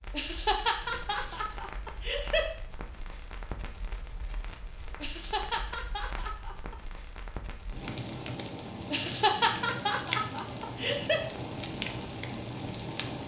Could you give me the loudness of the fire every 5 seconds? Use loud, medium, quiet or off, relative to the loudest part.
quiet, medium, loud.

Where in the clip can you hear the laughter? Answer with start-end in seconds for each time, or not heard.
0.1-2.5, 5.0-6.8, 8.9-11.2.